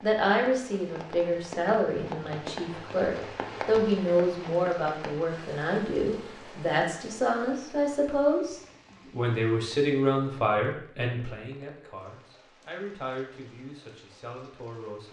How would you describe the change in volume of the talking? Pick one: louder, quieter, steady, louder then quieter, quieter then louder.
quieter.